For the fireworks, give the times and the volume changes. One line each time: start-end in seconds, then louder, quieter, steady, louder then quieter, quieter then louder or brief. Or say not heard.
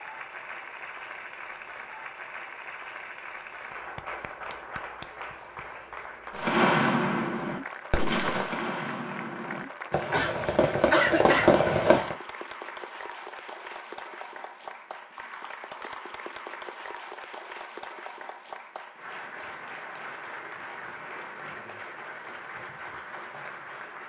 6.3-12.2 quieter then louder.